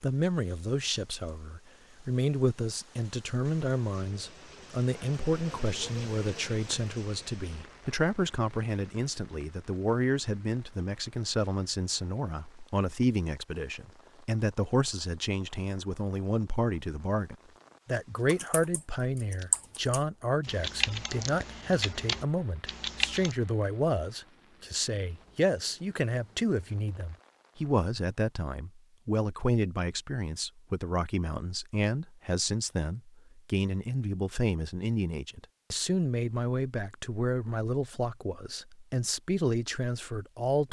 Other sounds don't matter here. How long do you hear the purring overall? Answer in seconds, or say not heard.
not heard.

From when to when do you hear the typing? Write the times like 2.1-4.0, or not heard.
18.2-23.4.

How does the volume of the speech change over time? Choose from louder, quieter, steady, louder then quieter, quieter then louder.
steady.